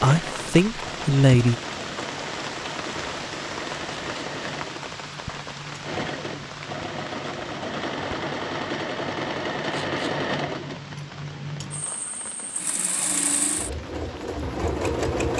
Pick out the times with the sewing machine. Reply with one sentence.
You can hear the sewing machine from 0.0 to 15.3 s.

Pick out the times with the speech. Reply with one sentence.
The speech can be heard from 0.0 to 1.6 s.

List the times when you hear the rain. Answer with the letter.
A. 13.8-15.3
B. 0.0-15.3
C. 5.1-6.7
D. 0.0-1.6
B.